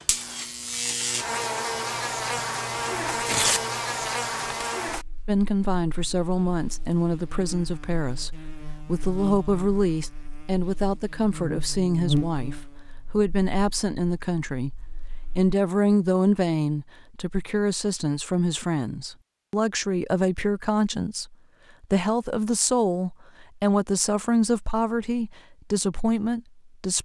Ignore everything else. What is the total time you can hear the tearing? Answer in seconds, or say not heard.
3 s.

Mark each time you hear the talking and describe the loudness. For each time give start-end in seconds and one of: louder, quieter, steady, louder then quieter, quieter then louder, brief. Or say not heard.
5.2-27.0 steady.